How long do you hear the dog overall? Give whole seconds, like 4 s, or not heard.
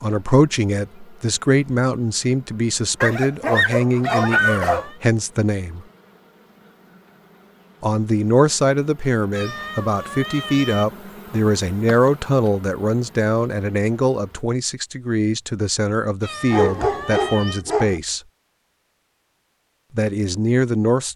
3 s.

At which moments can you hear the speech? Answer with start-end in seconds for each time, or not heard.
0.0-5.8, 7.8-18.2, 19.9-21.1.